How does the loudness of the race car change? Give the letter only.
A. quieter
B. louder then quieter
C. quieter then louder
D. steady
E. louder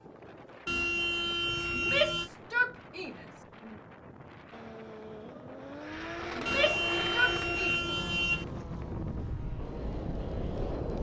B.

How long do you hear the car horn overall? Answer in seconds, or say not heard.
4 s.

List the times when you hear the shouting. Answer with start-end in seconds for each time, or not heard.
1.7-3.8, 6.3-7.8.